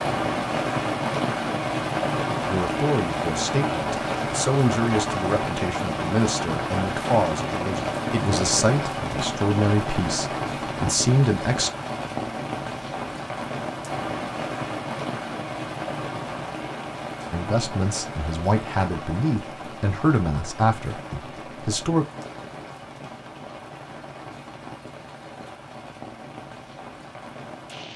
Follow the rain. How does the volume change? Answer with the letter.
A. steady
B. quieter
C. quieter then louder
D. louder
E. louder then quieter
B.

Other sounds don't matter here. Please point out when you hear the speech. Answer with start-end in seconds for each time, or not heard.
2.5-11.7, 17.3-22.1.